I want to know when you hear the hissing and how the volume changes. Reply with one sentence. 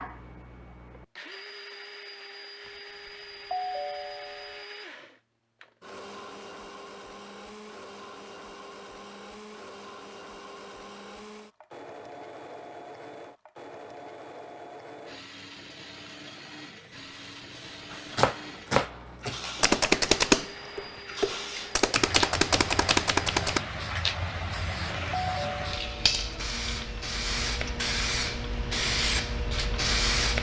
The hissing can be heard from 16.8 to 30.3 s, getting louder.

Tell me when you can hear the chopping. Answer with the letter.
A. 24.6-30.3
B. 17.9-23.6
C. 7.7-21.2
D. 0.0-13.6
B.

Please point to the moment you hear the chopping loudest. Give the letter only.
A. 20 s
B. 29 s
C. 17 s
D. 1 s
A.